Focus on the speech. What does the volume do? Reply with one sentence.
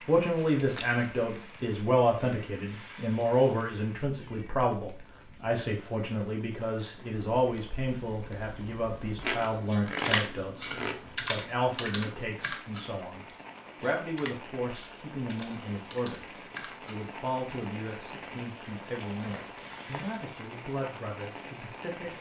The volume of the speech goes down.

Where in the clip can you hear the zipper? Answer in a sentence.
The zipper can't be heard in this clip.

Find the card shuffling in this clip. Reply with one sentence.
The card shuffling can be heard from 0.3 to 1.6 s, from 9.2 to 11.5 s and from 18.6 to 20.2 s.